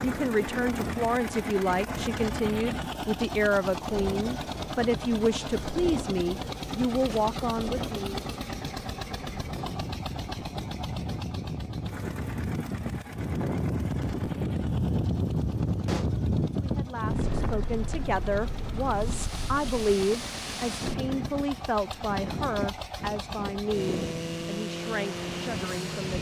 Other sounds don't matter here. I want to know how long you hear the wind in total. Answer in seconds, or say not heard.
26 s.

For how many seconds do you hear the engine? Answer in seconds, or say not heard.
26 s.